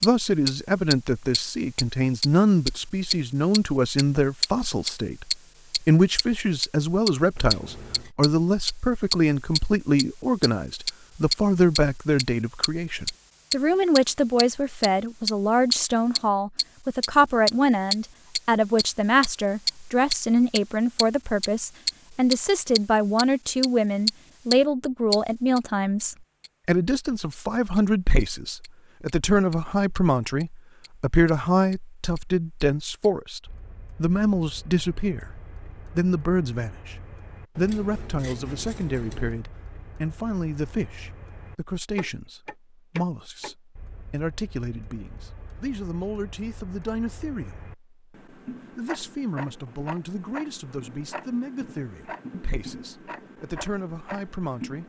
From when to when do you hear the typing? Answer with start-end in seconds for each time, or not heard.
not heard.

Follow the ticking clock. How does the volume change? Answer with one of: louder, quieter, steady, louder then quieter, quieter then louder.
quieter then louder.